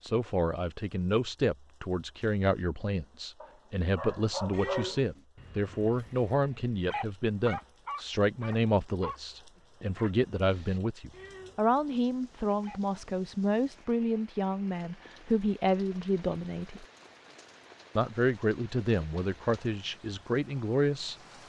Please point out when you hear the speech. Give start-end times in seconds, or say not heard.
0.0-16.9, 17.9-21.1.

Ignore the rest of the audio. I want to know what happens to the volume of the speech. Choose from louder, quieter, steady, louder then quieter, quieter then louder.
steady.